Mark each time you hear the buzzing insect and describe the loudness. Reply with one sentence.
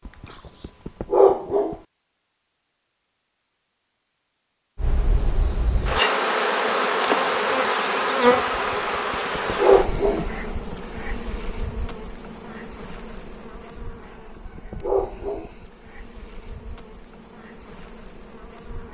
The buzzing insect can be heard from 4.8 to 18.9 s, getting quieter.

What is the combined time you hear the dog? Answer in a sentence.
The dog can be heard for 5 seconds in total.